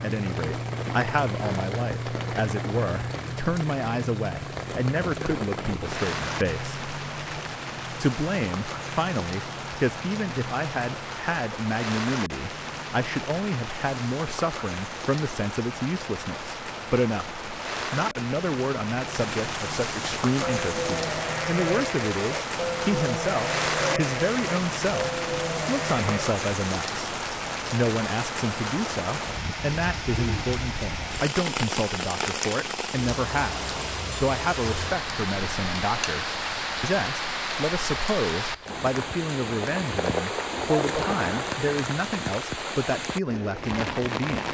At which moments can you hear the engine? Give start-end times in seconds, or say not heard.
0.0-11.2.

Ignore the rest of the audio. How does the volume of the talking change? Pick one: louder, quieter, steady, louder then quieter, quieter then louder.
steady.